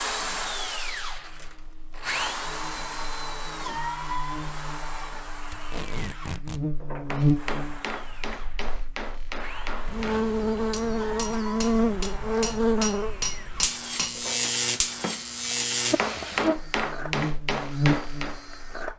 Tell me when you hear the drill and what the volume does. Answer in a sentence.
You can hear the drill from 0.0 to 18.9 s, getting quieter.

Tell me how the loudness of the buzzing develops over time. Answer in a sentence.
The volume of the buzzing goes up.